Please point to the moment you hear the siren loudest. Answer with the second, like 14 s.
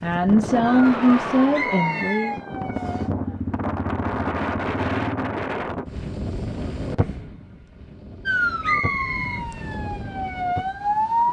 11 s.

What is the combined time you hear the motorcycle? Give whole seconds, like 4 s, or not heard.
3 s.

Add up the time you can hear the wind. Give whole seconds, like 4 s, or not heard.
11 s.